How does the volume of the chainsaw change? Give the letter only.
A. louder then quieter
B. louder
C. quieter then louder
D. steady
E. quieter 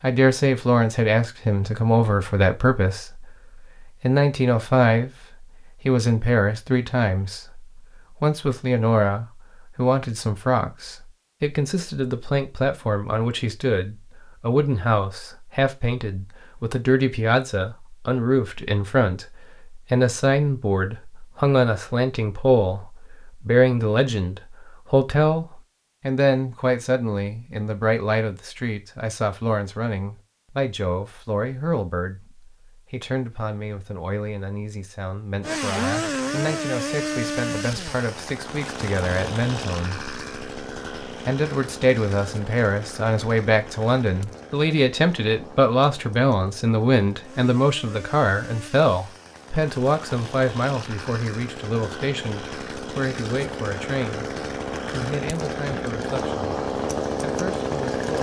C.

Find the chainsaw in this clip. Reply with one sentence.
You can hear the chainsaw from 35.4 to 58.1 s.